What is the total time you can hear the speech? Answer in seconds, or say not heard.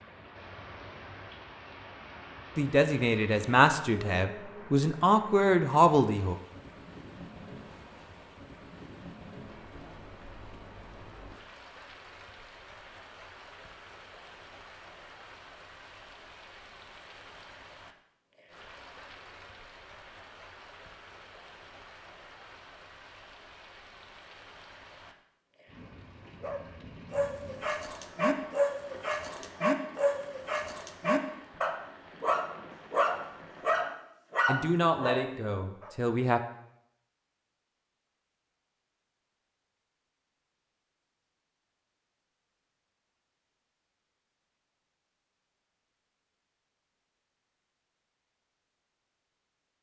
6 s.